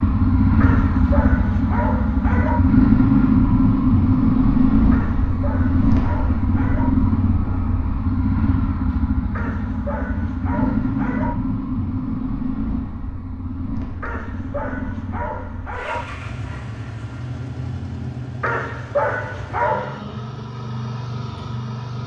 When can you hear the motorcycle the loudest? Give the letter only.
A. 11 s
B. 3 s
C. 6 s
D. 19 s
B.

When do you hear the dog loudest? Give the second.
19 s.